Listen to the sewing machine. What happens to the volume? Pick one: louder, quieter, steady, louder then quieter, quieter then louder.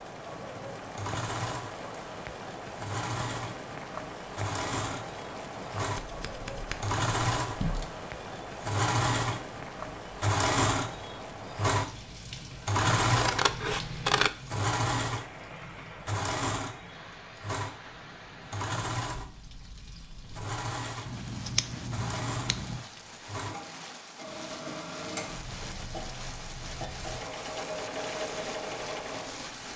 louder then quieter.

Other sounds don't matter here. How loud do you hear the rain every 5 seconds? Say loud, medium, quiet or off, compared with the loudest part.
loud, loud, loud, medium, medium, loud.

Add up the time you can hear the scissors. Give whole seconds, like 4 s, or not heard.
5 s.